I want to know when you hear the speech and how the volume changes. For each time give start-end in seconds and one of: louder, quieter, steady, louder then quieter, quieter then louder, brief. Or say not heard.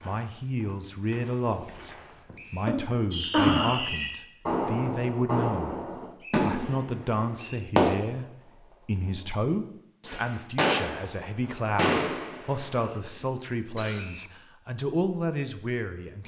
0.0-16.2 steady.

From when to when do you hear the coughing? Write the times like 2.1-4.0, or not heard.
2.3-3.8, 12.8-14.2.